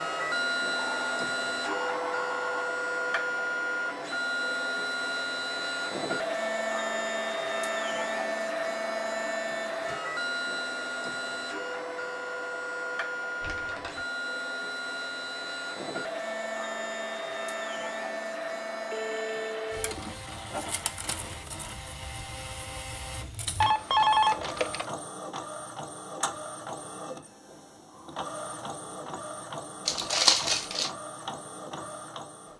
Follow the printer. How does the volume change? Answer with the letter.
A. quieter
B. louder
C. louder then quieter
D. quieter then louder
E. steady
A.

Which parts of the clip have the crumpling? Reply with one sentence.
You can hear the crumpling from 13.4 to 14.1 s and from 29.9 to 30.9 s.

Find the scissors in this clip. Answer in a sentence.
You can't hear the scissors here.